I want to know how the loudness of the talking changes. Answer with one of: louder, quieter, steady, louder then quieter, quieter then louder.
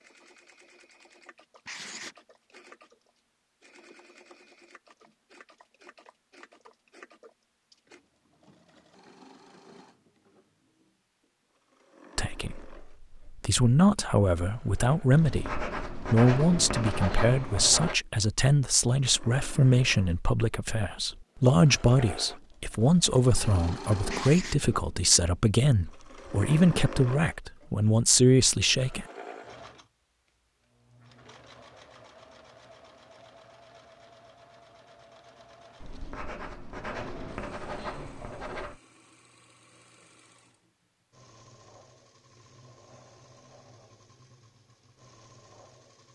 steady.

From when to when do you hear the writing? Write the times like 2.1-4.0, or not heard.
1.6-2.1, 15.1-18.0, 24.1-24.6, 35.8-38.8.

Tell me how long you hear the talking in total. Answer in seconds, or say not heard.
17 s.